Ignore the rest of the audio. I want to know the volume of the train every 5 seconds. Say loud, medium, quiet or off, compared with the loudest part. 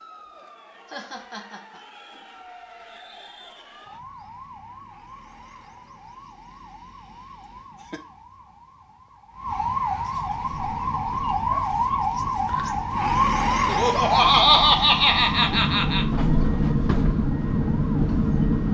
off, off, quiet, loud.